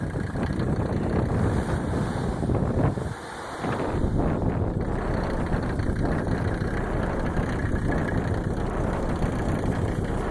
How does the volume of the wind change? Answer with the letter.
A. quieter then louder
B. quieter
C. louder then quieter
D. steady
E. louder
D.